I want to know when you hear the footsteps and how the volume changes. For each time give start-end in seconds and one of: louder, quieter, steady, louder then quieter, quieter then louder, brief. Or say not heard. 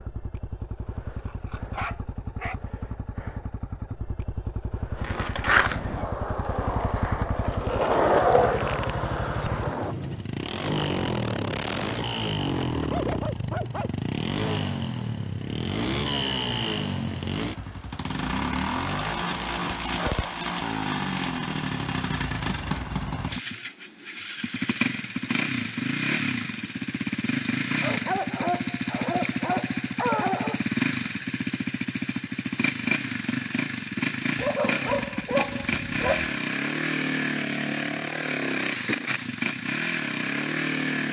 not heard.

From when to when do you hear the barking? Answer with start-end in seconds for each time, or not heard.
0.8-2.6, 12.8-13.9, 19.0-20.4, 27.8-30.6, 34.4-36.3.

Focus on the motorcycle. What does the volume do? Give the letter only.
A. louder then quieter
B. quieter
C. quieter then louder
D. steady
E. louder
E.